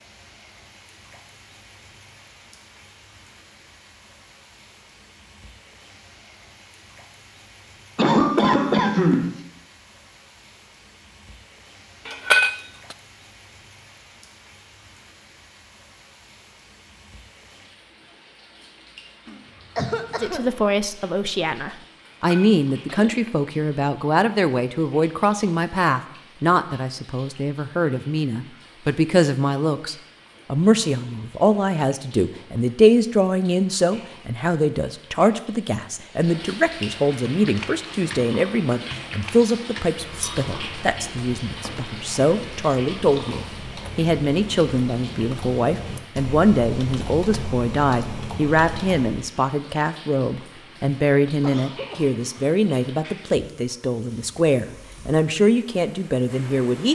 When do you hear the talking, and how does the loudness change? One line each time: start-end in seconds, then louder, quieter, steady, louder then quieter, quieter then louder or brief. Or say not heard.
20.2-56.9 steady.